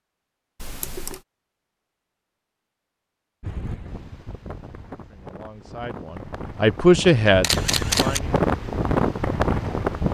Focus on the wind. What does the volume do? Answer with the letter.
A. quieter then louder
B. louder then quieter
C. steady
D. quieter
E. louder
E.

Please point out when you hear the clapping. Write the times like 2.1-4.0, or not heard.
not heard.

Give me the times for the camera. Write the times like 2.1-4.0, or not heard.
0.6-1.2, 7.4-8.2.